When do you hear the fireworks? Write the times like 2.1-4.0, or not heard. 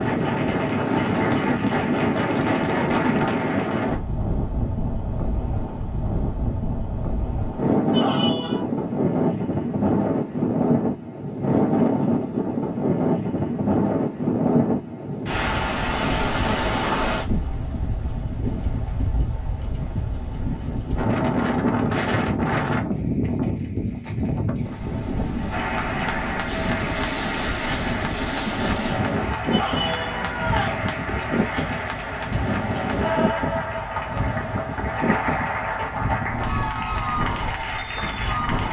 not heard.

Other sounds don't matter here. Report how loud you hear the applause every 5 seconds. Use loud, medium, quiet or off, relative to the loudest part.
medium, off, off, off, off, loud, loud, loud.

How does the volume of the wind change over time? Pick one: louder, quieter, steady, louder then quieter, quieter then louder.
quieter.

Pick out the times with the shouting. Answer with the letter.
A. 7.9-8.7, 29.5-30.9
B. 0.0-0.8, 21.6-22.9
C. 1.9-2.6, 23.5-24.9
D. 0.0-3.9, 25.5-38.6
A.